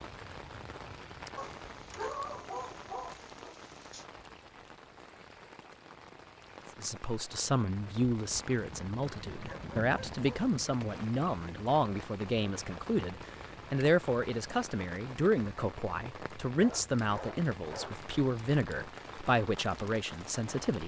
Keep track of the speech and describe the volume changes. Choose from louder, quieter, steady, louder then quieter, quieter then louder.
steady.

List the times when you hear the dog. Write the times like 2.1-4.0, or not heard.
1.4-4.0, 8.6-10.3, 16.6-18.1.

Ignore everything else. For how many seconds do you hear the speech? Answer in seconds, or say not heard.
14 s.